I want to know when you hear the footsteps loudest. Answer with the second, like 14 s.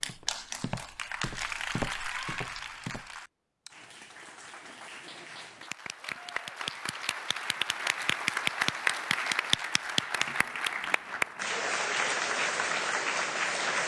2 s.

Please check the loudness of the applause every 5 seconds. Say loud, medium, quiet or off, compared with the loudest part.
medium, loud, loud.